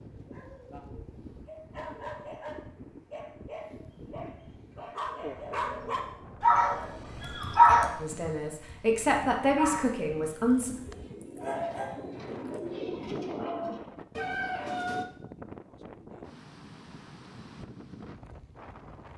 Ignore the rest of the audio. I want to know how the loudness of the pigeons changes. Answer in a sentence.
The volume of the pigeons goes up.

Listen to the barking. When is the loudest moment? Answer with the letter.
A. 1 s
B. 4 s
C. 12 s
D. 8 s
D.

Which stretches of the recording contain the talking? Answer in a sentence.
You can hear the talking from 8.0 to 10.8 s.